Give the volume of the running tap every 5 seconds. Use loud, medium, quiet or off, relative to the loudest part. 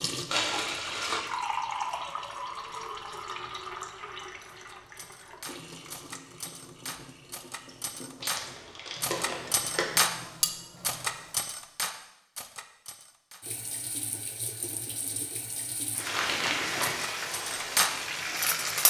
loud, quiet, medium, loud.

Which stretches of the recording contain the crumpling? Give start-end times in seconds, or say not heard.
0.2-1.2, 8.2-9.8, 16.1-17.1.